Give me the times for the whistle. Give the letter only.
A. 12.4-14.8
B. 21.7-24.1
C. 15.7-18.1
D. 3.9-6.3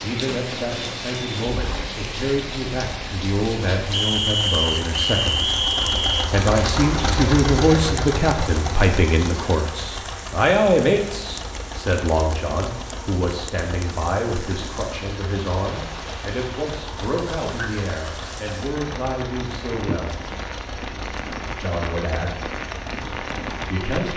D.